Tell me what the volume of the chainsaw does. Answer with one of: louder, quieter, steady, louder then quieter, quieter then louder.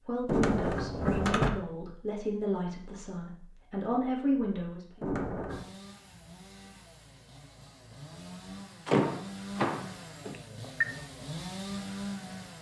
louder.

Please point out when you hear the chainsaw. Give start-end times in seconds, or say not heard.
5.5-12.5.